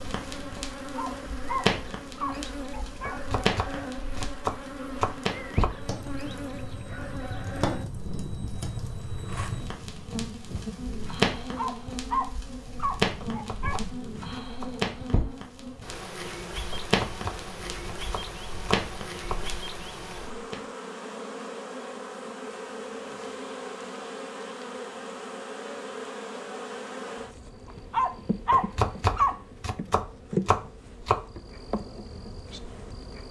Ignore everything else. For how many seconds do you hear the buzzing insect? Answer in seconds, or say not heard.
33 s.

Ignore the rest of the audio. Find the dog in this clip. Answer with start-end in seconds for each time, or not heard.
0.9-3.1, 11.6-13.8, 27.9-29.4.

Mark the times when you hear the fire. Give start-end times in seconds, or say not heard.
0.0-20.6.